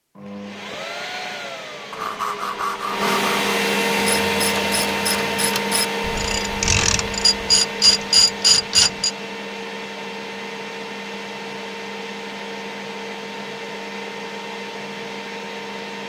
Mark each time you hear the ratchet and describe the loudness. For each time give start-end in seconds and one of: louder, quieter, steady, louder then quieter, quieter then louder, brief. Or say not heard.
4.0-9.1 louder.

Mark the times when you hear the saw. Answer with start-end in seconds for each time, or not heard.
1.9-3.5.